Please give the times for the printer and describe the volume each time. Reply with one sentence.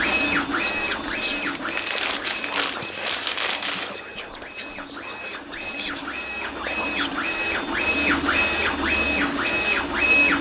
The printer can be heard from 0.0 to 10.3 s, getting quieter then louder.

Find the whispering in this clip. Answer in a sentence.
You can hear the whispering from 0.3 to 9.6 s.